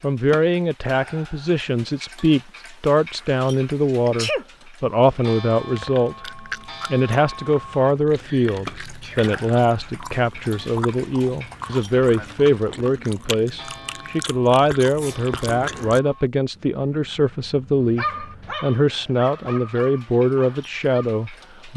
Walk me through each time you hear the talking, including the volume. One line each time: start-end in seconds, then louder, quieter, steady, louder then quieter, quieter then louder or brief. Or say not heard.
0.0-21.7 steady.